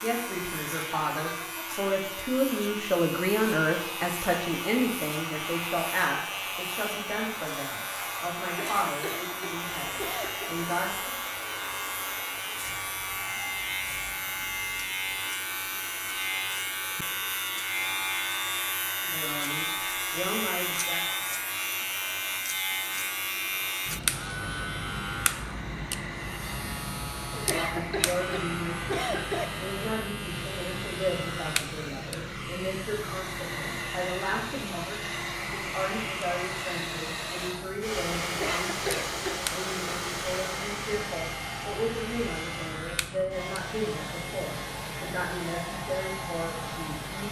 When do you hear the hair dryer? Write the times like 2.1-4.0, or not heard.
0.0-47.2.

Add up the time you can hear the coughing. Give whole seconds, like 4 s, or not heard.
5 s.